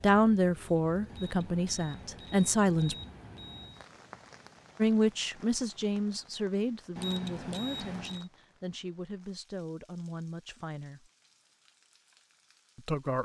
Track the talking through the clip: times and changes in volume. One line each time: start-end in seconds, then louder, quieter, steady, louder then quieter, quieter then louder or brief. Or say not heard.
0.0-3.0 brief
4.8-11.0 quieter
12.8-13.2 brief.